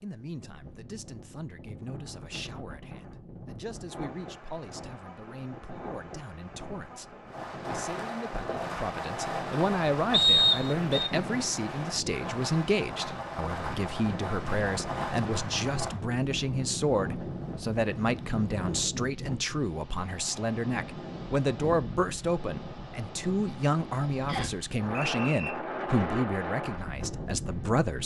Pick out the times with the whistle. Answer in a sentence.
The whistle can be heard from 10.1 to 11.1 s and from 24.2 to 25.6 s.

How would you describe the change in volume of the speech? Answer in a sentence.
The volume of the speech goes up.